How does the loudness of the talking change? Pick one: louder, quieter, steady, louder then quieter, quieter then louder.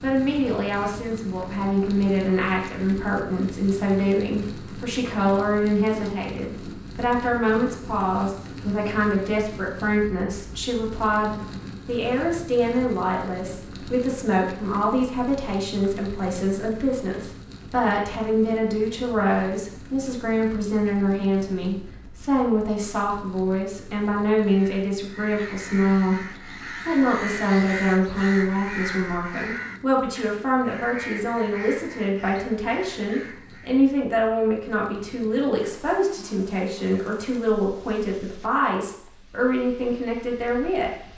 steady.